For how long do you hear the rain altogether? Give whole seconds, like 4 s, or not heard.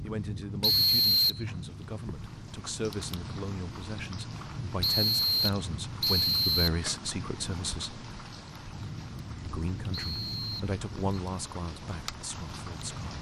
13 s.